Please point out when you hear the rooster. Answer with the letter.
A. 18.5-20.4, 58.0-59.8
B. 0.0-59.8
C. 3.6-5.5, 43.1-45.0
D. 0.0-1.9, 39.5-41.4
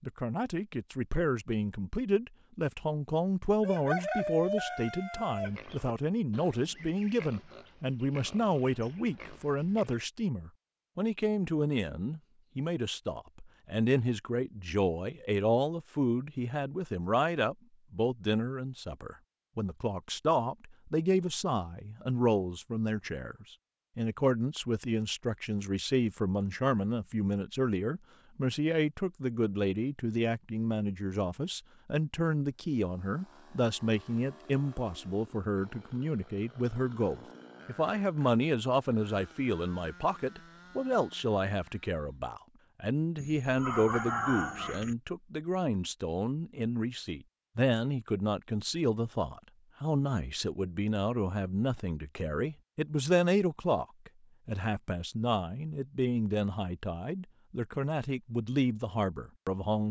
C.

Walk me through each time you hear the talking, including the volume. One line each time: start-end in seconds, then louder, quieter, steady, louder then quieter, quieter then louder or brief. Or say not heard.
0.0-59.8 steady.